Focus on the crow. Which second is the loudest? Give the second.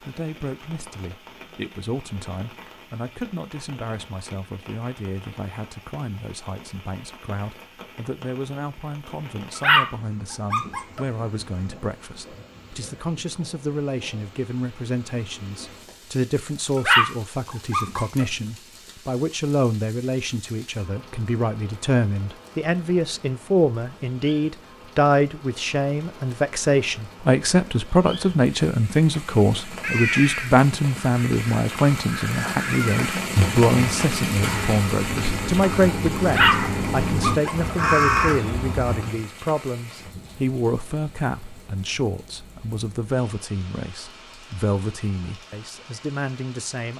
38 s.